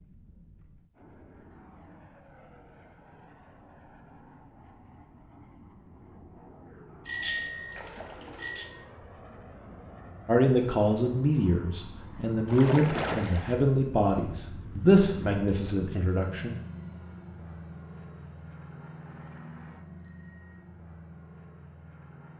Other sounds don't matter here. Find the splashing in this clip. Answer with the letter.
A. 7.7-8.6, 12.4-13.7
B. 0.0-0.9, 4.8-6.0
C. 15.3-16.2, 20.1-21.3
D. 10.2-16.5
A.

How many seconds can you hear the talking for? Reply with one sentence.
The talking can be heard for 6 seconds in total.